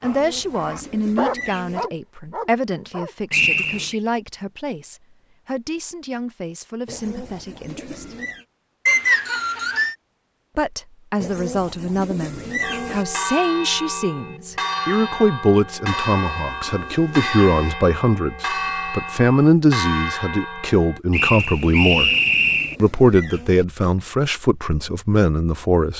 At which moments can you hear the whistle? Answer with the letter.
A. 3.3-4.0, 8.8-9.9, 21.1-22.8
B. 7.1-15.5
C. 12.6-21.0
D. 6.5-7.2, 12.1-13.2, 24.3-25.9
A.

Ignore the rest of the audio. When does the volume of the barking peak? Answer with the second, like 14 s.
1 s.